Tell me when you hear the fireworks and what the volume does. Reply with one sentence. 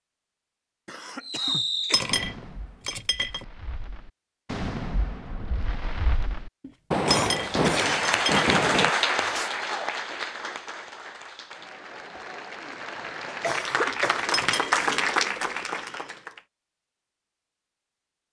The fireworks can be heard from 1.2 to 9.5 s, getting quieter then louder.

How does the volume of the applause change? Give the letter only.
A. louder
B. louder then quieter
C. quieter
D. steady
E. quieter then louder
E.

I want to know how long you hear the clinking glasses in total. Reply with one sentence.
You can hear the clinking glasses for 5 seconds altogether.